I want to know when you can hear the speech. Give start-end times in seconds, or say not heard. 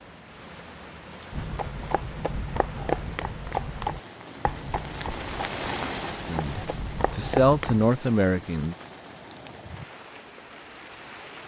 6.2-8.8.